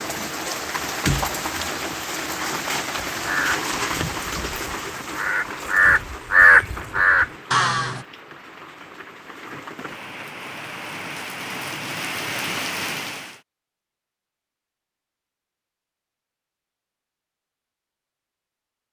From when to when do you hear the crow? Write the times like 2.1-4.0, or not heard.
3.1-8.1.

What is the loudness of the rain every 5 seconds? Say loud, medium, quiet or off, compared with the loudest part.
loud, medium, loud, off.